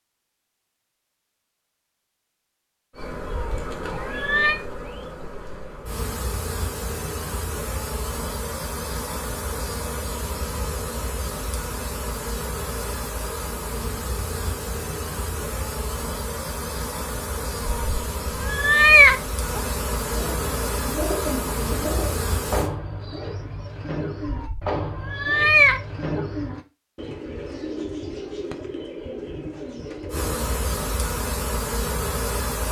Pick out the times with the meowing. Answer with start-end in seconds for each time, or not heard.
3.2-4.6, 17.6-19.6, 24.2-26.2.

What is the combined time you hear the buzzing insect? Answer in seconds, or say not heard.
22 s.